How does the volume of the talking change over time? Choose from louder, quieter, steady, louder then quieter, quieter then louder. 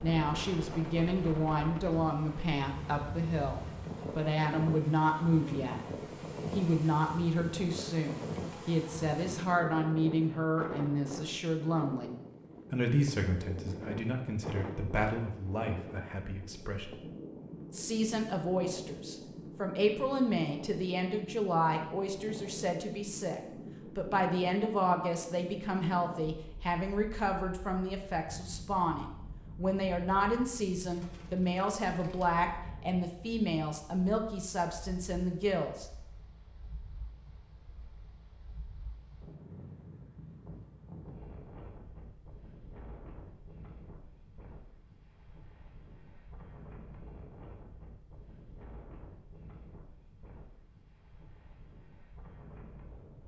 steady.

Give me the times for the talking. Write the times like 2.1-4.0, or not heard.
0.0-5.8, 6.5-17.0, 17.7-35.9.